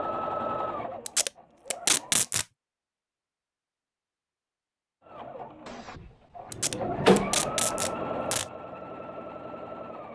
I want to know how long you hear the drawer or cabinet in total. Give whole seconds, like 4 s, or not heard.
2 s.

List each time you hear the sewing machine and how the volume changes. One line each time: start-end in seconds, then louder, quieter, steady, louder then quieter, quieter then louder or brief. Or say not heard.
0.0-2.3 brief
5.0-10.1 louder then quieter.